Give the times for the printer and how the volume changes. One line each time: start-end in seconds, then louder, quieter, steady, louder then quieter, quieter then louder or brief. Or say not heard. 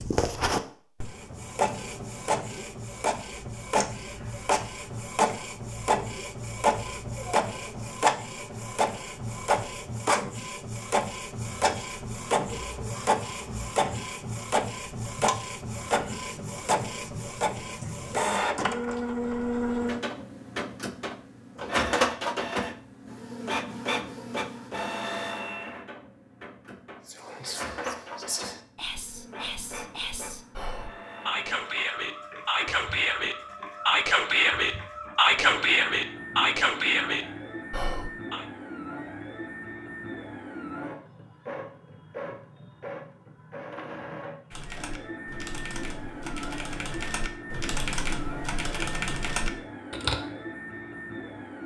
0.0-51.6 quieter.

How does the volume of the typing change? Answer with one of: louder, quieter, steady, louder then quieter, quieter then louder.
louder.